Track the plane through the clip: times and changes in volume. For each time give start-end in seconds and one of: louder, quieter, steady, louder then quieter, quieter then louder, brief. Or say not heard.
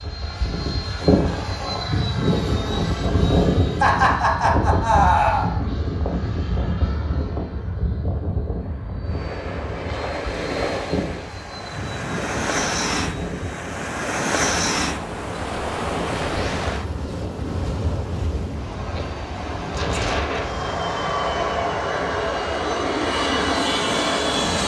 0.0-24.6 quieter then louder.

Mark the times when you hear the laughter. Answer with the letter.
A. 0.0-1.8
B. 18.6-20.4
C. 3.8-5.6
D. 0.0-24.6
C.